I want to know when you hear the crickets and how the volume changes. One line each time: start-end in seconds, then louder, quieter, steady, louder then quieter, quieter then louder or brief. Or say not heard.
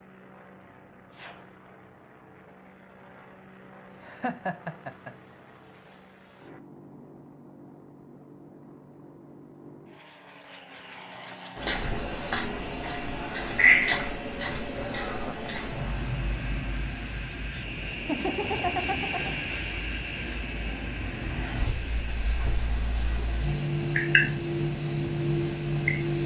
11.6-26.2 quieter then louder.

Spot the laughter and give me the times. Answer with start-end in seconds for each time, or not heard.
3.7-5.1, 14.7-15.5, 18.1-19.4.